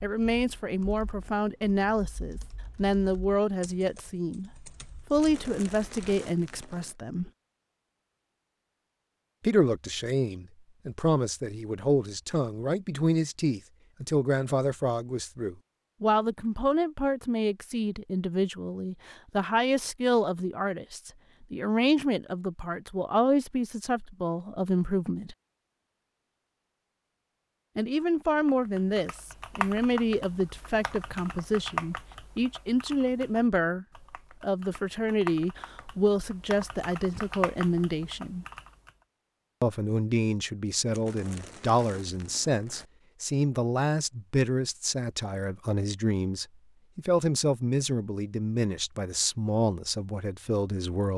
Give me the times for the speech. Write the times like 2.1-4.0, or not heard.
0.0-7.3, 9.4-25.4, 27.8-38.5, 39.6-51.1.